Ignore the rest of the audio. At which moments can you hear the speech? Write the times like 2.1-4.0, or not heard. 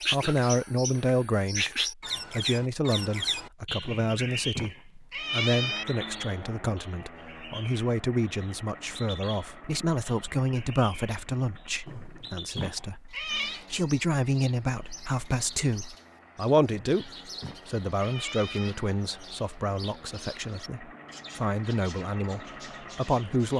0.1-23.5.